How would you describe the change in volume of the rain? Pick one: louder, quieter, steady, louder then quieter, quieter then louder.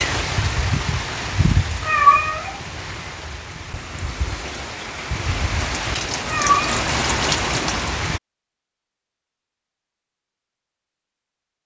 quieter then louder.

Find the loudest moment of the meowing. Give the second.
2 s.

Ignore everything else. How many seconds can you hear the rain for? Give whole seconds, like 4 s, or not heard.
8 s.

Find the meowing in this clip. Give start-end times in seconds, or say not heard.
1.8-2.5, 6.2-6.8.